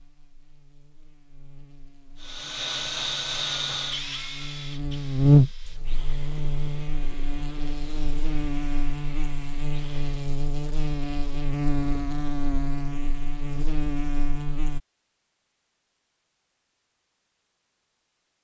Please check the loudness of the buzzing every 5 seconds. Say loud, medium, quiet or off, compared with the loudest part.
quiet, loud, medium, off.